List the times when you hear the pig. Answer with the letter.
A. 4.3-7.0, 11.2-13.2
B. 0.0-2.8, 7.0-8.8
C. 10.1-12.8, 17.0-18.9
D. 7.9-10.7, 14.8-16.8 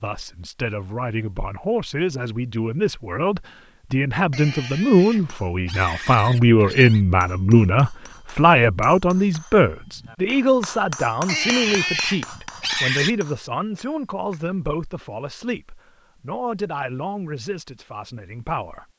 A.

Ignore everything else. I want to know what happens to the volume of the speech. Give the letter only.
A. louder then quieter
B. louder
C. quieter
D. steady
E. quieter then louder
A.